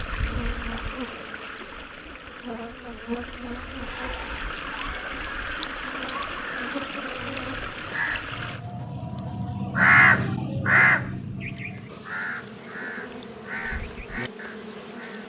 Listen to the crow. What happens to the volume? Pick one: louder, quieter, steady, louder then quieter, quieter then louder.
louder then quieter.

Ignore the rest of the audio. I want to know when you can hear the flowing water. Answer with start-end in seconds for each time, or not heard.
0.0-8.6.